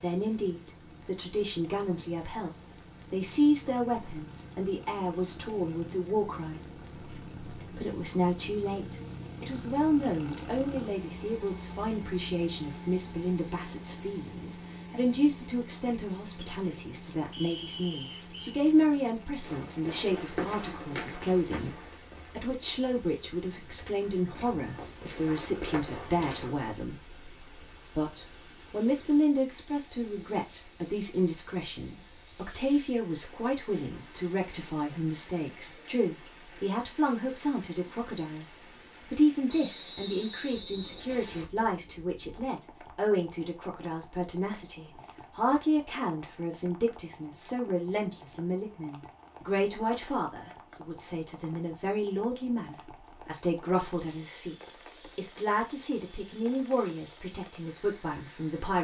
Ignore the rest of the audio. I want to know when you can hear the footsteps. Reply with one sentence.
The footsteps can be heard from 19.4 to 26.5 s.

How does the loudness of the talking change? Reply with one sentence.
The volume of the talking stays about the same.